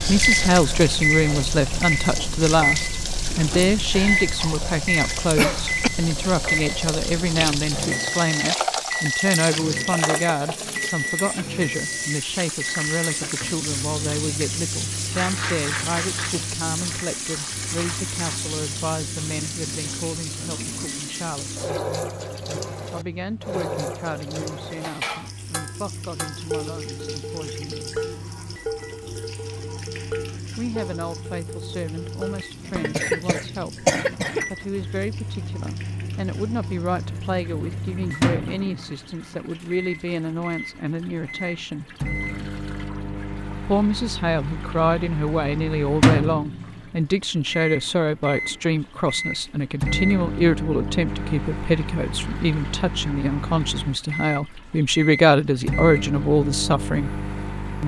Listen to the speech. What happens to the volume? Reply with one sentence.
The loudness of the speech goes down, then up.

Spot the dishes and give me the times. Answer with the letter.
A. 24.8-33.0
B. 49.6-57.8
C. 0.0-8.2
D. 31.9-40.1
A.